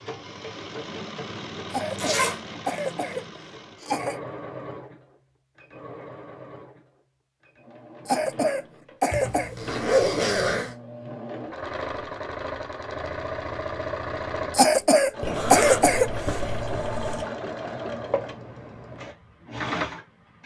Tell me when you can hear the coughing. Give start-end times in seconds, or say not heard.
1.7-4.2, 8.1-9.6, 14.5-16.2.